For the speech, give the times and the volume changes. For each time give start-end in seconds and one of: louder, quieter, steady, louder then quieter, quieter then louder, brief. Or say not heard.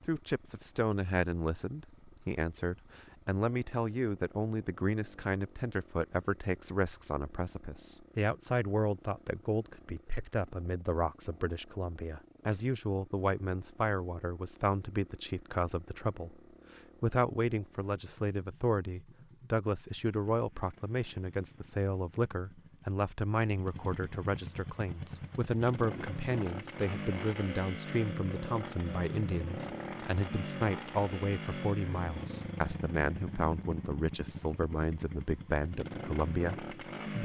0.0-16.4 steady
17.0-37.1 steady.